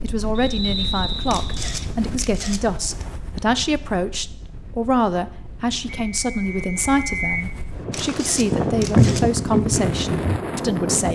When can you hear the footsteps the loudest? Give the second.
9 s.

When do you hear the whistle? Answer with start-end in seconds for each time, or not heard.
0.3-1.6, 6.1-7.5.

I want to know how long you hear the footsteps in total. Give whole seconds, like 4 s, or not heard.
3 s.